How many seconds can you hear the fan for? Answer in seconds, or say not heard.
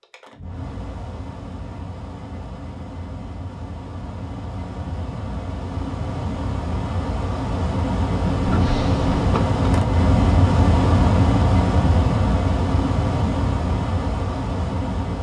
15 s.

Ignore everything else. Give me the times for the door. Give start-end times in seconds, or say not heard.
8.4-9.4.